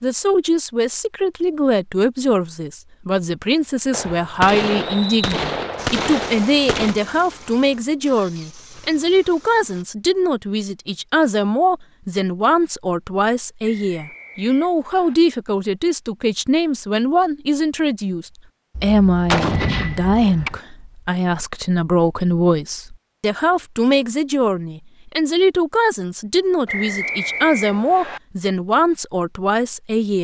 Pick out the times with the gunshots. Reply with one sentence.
You can hear the gunshots from 3.9 to 7.0 s and from 18.8 to 20.6 s.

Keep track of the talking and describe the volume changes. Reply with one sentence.
The volume of the talking stays about the same.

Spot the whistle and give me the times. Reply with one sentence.
The whistle can be heard from 4.8 to 5.3 s, from 13.6 to 15.2 s and from 26.6 to 28.2 s.